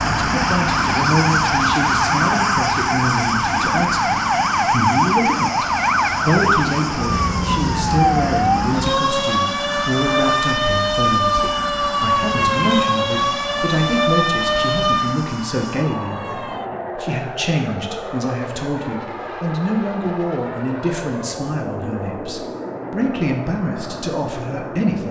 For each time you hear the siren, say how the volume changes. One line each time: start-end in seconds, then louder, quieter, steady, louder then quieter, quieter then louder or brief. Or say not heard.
0.0-25.0 quieter.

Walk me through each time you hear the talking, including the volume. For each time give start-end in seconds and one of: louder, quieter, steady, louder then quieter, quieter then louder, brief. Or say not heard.
0.1-25.0 steady.